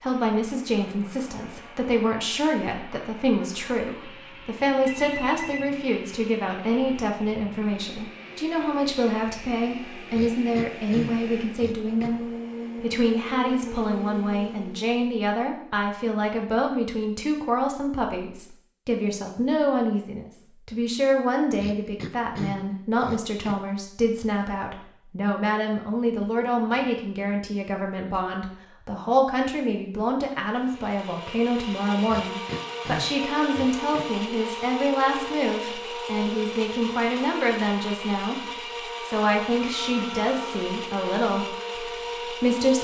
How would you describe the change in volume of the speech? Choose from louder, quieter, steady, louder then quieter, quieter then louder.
steady.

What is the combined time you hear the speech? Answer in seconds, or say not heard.
43 s.